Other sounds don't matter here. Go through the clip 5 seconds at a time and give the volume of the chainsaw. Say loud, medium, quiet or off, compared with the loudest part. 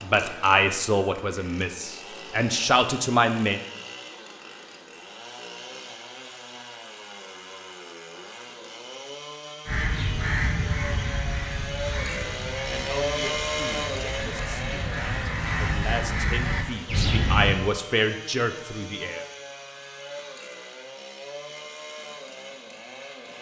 medium, medium, loud, medium, medium.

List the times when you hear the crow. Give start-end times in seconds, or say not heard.
9.7-17.6.